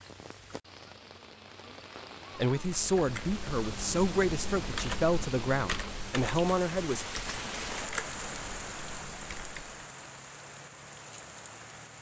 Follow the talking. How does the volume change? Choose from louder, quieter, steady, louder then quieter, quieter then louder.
steady.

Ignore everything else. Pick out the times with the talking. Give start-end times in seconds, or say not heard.
2.4-7.0.